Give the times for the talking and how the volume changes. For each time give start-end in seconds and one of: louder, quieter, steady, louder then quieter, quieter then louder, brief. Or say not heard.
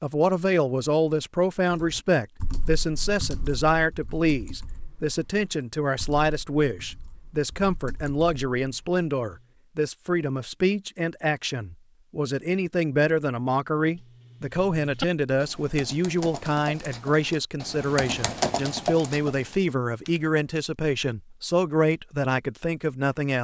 0.0-23.3 steady.